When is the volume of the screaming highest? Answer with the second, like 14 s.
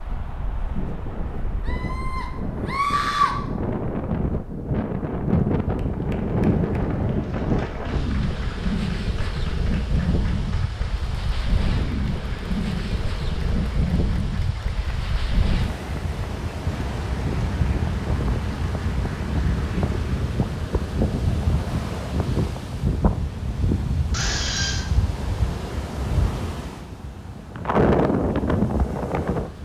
3 s.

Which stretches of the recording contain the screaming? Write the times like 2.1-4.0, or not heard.
1.6-3.3, 24.1-24.9.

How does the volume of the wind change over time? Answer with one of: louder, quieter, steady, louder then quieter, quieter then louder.
steady.